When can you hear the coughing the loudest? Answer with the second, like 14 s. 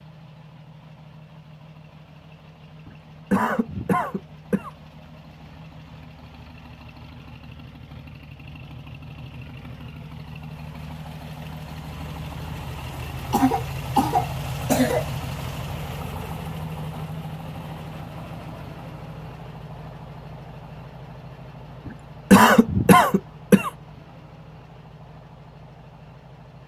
22 s.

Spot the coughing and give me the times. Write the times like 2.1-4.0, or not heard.
2.9-4.7, 13.3-15.1, 21.9-23.7.